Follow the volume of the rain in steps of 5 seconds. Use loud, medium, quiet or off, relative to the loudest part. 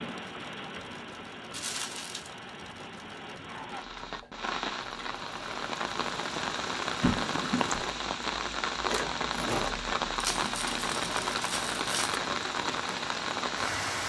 medium, loud, loud.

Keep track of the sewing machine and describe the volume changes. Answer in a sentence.
The volume of the sewing machine goes up.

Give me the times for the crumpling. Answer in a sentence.
You can hear the crumpling from 1.5 to 2.3 s, from 7.0 to 7.8 s and from 10.2 to 12.2 s.